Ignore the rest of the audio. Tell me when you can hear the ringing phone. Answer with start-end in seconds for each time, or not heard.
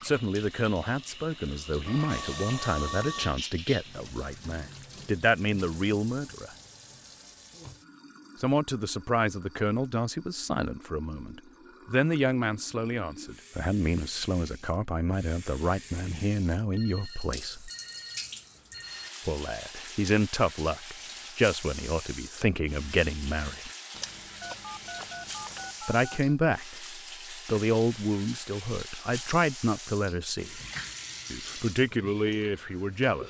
1.9-3.4, 16.7-19.1, 24.4-26.4.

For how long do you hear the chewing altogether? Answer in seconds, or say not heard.
2 s.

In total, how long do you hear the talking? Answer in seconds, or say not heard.
27 s.